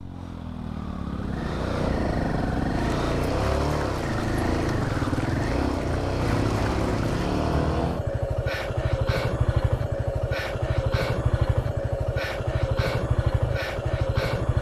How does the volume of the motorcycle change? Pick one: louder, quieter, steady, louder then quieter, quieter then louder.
steady.